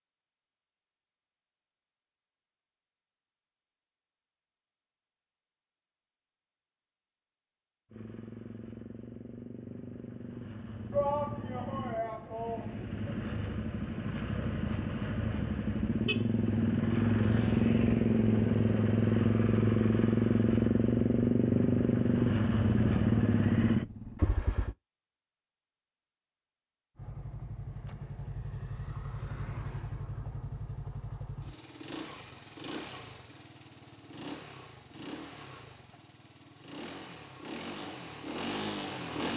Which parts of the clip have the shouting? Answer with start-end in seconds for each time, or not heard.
10.9-12.9.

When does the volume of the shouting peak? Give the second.
11 s.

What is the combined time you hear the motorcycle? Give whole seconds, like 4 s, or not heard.
29 s.